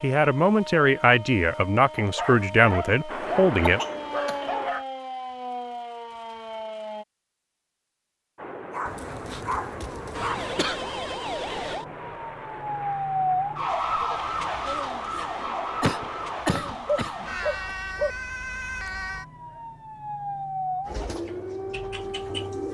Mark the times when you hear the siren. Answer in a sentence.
The siren can be heard from 0.0 to 7.0 s and from 10.1 to 22.6 s.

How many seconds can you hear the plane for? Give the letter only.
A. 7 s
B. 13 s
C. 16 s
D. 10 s
D.